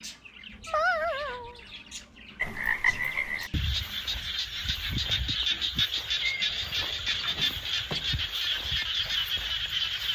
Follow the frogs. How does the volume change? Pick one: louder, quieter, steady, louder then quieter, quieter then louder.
steady.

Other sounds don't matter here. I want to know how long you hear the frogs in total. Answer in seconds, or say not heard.
8 s.